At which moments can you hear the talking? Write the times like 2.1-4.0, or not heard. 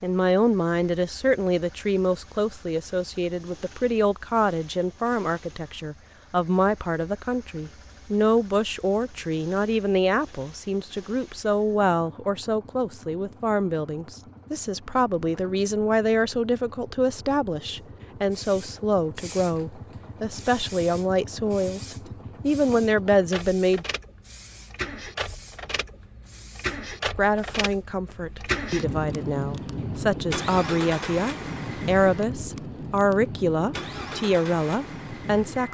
0.0-23.9, 27.1-35.7.